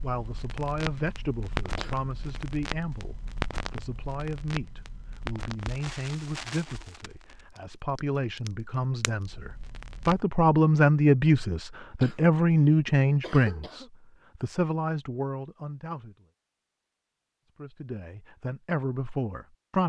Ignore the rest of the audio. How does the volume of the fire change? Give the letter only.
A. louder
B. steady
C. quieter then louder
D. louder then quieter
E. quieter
E.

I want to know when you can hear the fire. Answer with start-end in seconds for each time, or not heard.
0.0-10.2.